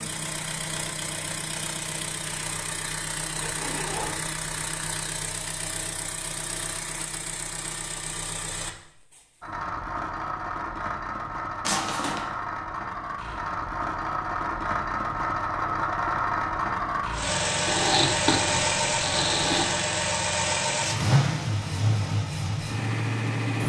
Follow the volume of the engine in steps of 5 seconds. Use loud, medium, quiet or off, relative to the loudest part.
medium, medium, medium, loud, loud.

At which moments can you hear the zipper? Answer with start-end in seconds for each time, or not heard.
3.4-4.4, 11.6-12.2, 17.6-19.6.